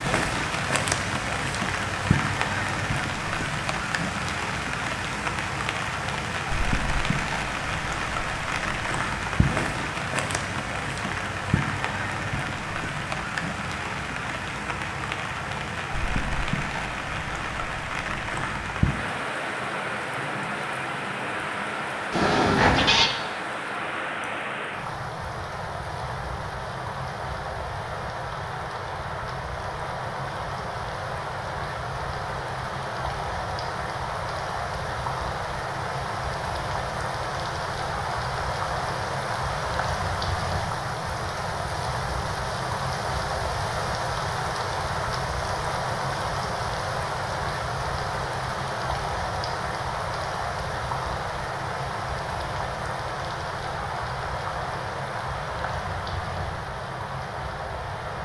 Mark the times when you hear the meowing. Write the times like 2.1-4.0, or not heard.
22.1-23.1.